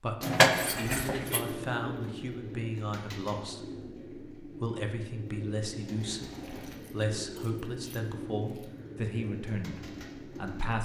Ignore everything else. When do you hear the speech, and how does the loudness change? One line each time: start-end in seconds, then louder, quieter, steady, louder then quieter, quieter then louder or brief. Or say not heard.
0.0-10.7 steady.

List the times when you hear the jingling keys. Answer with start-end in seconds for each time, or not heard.
0.2-1.5, 6.4-8.7.